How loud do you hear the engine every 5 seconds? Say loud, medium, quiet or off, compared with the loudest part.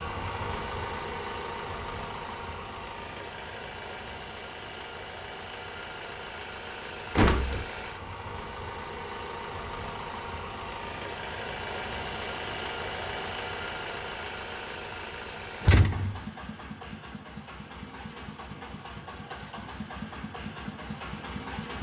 loud, loud, loud, medium, loud.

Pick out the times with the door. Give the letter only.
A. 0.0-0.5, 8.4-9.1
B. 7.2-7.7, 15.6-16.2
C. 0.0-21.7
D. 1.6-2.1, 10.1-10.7
B.